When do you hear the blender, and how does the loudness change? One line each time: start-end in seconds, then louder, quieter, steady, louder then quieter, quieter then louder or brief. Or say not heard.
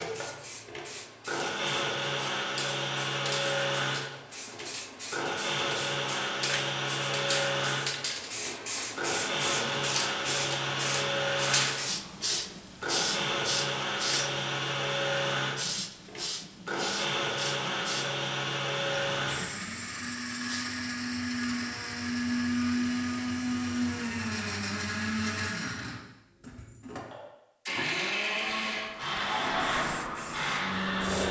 0.0-31.2 steady.